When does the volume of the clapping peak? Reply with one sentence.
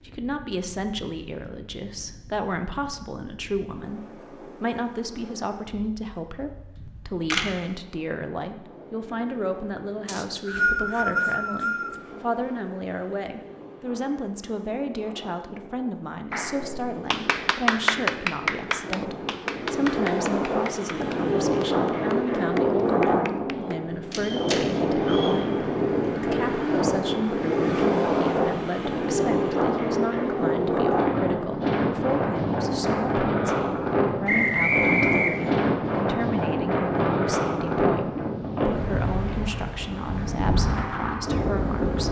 The loudest moment of the clapping is at 18 seconds.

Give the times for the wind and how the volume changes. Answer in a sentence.
You can hear the wind from 0.0 to 42.0 s, getting louder.